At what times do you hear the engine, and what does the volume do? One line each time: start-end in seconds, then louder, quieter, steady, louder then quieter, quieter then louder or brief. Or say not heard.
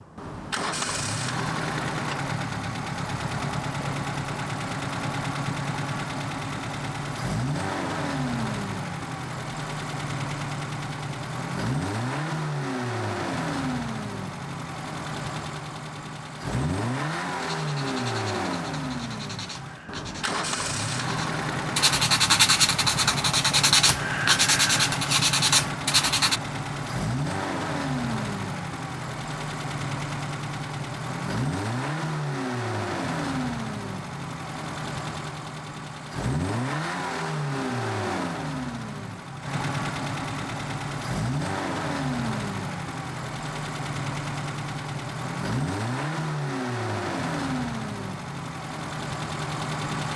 0.0-50.1 steady.